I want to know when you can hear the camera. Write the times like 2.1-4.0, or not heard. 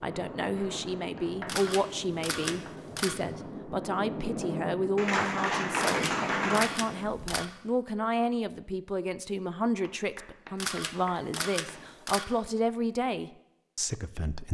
1.4-3.1, 5.8-7.5, 10.6-12.2.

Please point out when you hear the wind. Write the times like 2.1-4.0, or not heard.
0.0-7.4.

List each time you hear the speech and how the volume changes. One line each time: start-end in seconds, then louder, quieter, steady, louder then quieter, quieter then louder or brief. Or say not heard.
0.0-14.4 steady.